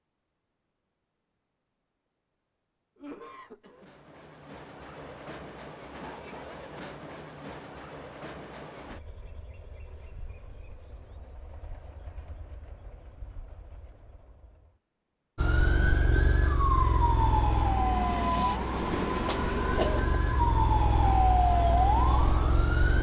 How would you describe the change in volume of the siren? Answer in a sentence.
The volume of the siren goes down, then up.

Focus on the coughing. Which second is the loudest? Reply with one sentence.
The loudest moment of the coughing is at 20 seconds.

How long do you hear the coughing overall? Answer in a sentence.
You can hear the coughing for 2 seconds altogether.